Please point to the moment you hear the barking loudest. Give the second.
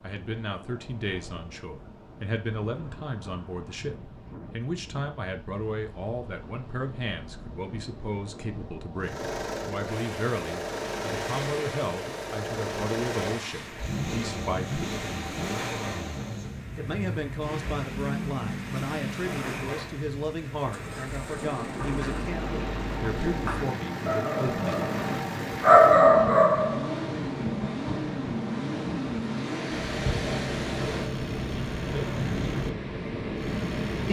26 s.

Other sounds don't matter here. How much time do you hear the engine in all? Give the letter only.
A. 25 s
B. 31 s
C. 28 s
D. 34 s
A.